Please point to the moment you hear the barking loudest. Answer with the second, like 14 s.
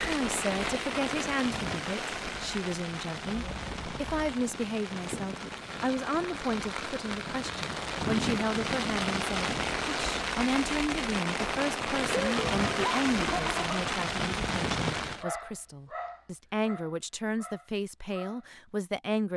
13 s.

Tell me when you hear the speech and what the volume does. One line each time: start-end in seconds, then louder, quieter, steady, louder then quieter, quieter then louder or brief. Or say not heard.
0.0-19.3 steady.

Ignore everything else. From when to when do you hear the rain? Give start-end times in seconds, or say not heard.
0.0-15.2.